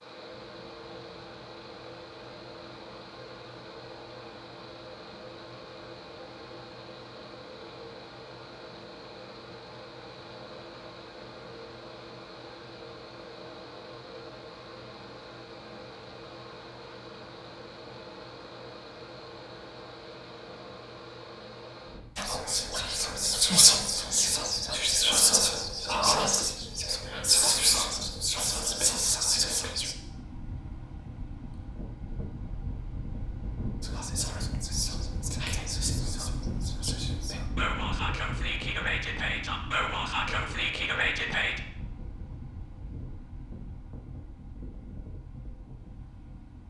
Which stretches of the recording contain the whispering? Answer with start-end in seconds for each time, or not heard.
22.1-29.9, 33.8-41.6.